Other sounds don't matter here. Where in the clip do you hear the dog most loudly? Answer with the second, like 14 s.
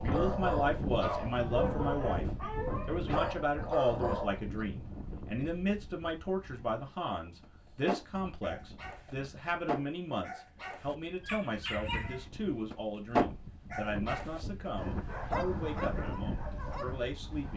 13 s.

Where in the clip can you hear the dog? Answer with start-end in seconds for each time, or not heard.
0.0-4.7, 7.4-17.5.